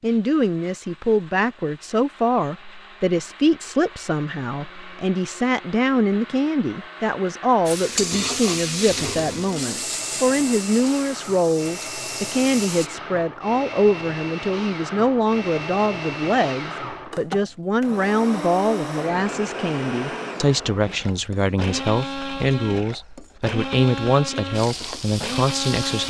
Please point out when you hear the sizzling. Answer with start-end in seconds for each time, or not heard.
7.7-12.9, 24.5-26.0.